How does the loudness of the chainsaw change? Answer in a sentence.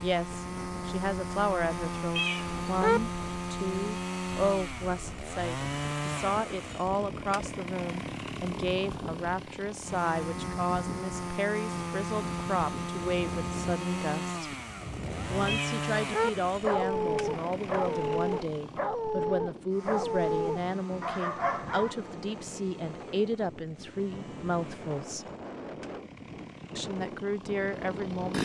The loudness of the chainsaw goes down.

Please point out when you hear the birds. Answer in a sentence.
The birds can't be heard in this clip.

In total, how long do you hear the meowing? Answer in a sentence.
You can hear the meowing for 2 seconds altogether.